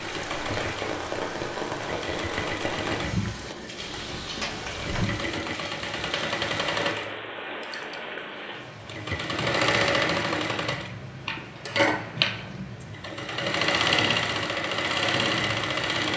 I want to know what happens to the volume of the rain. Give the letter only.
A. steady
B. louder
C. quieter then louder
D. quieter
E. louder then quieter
D.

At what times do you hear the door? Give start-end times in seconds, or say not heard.
3.8-5.0.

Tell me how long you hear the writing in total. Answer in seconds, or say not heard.
not heard.